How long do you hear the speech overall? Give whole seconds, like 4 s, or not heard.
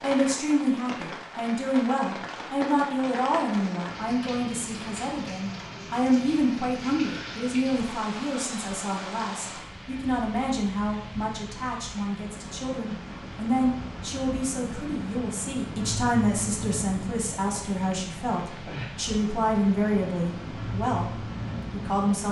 22 s.